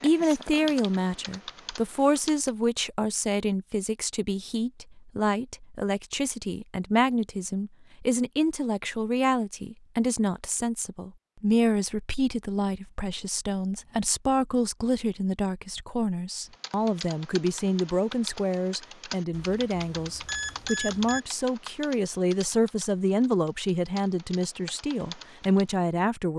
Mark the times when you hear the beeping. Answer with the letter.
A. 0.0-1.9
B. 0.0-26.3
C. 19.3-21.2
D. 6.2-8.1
C.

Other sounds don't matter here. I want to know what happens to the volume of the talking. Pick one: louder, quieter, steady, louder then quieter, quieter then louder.
steady.